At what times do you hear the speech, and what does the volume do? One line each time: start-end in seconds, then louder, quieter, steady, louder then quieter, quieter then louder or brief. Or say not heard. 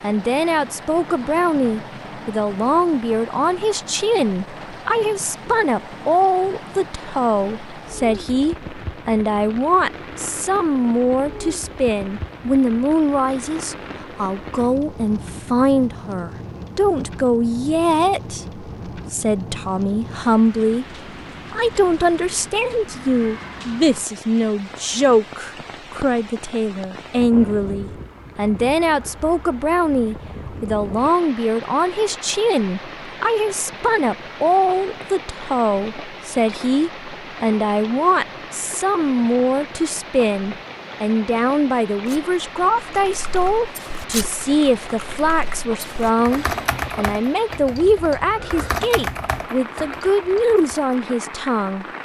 0.0-20.9 steady
21.5-51.9 steady.